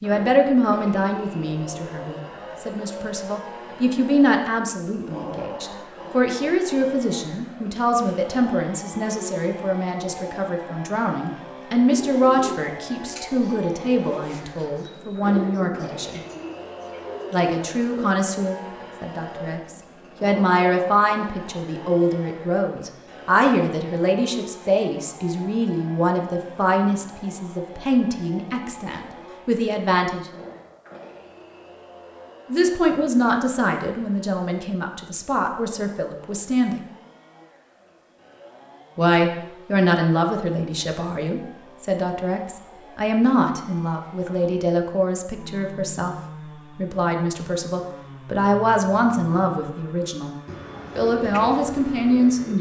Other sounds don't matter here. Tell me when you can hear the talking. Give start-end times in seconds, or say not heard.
0.0-16.2, 17.3-30.3, 32.5-36.8, 39.0-50.4, 51.0-52.5.